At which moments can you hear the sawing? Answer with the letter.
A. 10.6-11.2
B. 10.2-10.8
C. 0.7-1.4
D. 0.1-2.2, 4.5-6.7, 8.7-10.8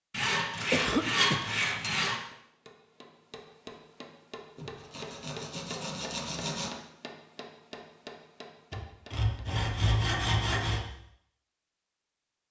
D.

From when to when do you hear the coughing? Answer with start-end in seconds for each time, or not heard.
0.7-1.4.